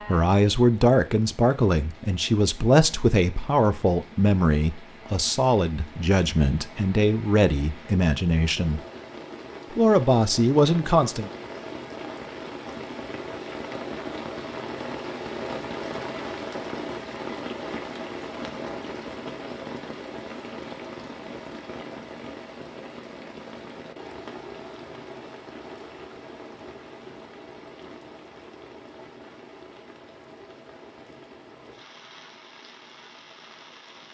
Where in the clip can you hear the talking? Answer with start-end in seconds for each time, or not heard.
0.1-8.8, 9.7-11.3.